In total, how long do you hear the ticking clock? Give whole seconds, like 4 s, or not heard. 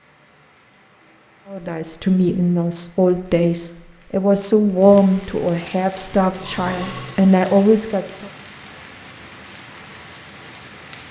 not heard.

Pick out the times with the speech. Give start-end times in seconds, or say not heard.
1.5-8.3.